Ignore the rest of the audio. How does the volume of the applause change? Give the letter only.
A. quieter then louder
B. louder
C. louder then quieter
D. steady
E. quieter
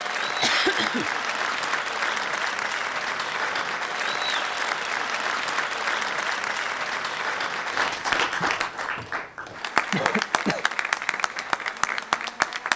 D.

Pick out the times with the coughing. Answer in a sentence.
The coughing can be heard from 0.4 to 1.1 s and from 9.9 to 10.7 s.